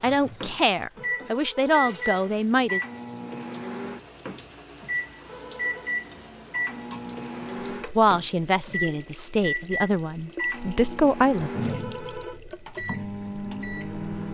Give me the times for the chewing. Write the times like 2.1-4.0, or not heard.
not heard.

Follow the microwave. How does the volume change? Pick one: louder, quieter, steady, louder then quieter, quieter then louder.
steady.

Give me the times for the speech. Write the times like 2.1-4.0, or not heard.
0.0-2.8, 8.0-11.5.